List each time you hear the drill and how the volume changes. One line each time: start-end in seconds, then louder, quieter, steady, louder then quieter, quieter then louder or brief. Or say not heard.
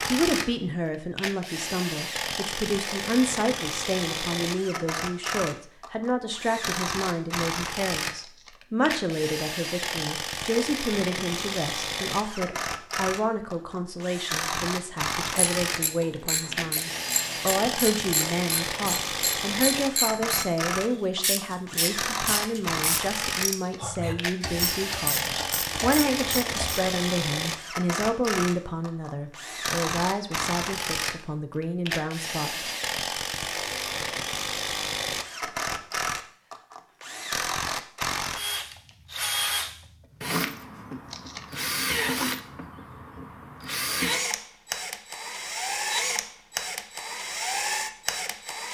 0.0-48.6 steady.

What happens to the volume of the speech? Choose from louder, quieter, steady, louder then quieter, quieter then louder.
steady.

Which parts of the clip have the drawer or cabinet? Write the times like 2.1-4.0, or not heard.
not heard.